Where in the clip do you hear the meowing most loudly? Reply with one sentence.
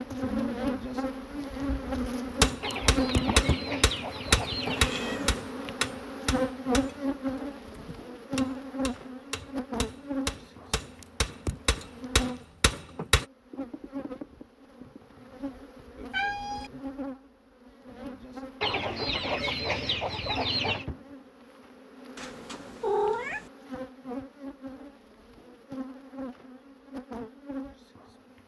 The loudest moment of the meowing is at 23 seconds.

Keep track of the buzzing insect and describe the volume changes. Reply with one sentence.
The loudness of the buzzing insect goes down.